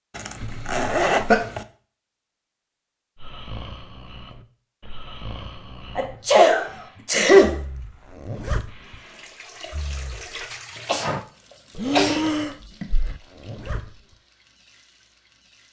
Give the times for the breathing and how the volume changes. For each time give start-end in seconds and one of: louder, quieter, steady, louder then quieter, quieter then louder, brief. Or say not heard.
3.1-13.2 quieter then louder.